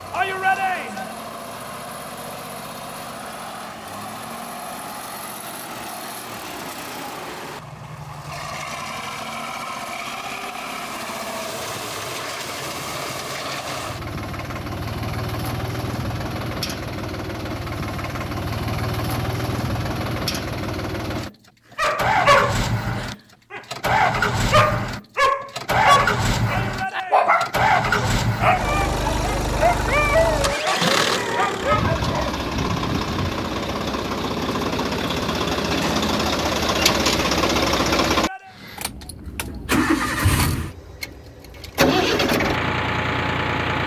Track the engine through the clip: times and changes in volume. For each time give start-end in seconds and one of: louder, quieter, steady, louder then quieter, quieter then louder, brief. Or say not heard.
0.0-43.8 louder.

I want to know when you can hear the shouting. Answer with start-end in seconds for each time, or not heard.
0.1-1.1, 26.4-27.5, 38.1-38.6.